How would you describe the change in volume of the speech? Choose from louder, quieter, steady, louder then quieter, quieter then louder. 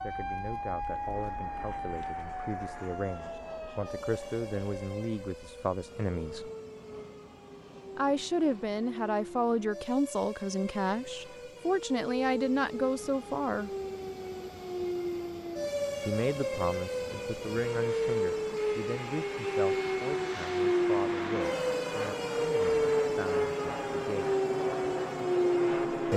louder then quieter.